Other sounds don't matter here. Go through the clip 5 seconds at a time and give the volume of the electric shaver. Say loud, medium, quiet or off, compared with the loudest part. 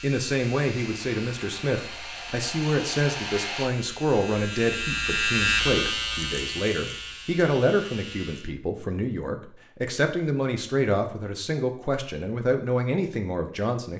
medium, loud, off.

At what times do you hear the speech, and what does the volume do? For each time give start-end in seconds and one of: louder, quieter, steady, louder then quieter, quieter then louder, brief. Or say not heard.
0.0-13.9 steady.